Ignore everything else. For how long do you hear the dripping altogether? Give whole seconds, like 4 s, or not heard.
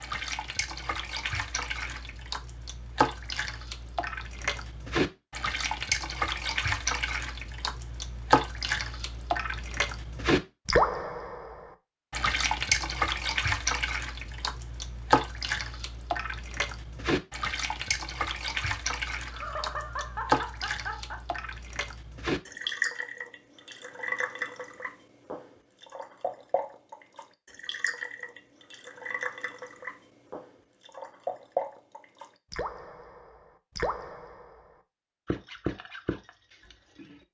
37 s.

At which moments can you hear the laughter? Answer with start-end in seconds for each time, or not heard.
19.3-21.2.